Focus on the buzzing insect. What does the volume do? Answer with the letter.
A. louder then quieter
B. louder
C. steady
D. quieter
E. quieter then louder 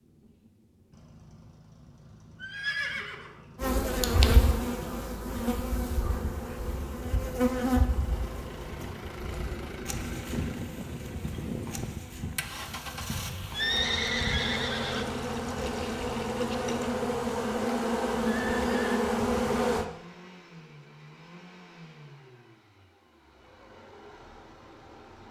E.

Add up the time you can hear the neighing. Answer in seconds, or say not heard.
3 s.